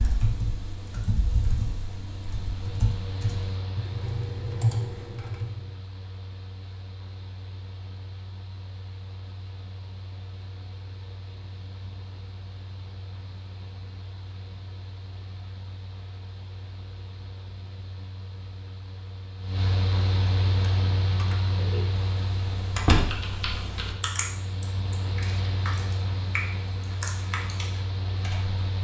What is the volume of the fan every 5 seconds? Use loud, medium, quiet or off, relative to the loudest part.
medium, quiet, quiet, medium, loud, loud.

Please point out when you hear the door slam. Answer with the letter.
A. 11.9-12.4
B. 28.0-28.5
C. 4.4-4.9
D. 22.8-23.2
D.